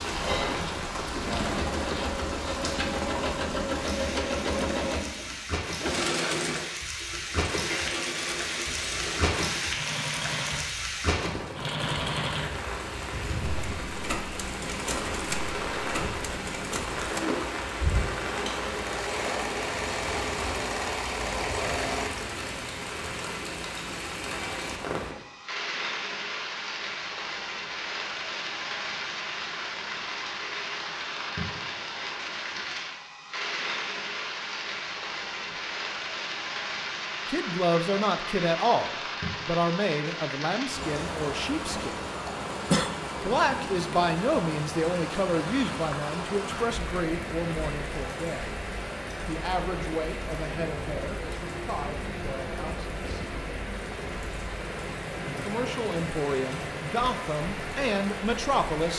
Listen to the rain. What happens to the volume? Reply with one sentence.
The loudness of the rain stays about the same.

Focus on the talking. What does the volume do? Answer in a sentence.
The loudness of the talking goes down, then up.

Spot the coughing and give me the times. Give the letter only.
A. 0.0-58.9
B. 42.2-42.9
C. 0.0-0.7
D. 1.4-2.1
B.